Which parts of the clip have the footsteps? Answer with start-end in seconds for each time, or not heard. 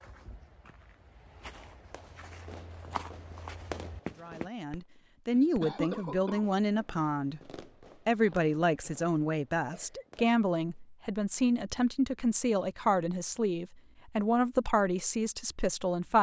0.0-4.5.